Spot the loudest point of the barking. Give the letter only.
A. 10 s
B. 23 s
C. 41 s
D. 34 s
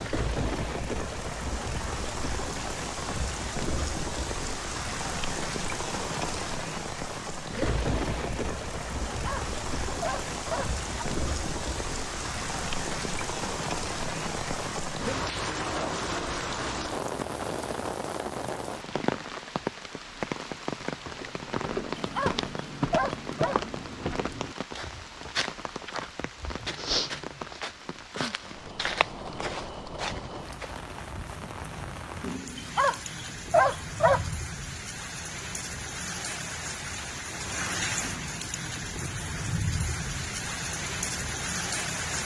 D.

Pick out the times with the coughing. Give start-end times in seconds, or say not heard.
not heard.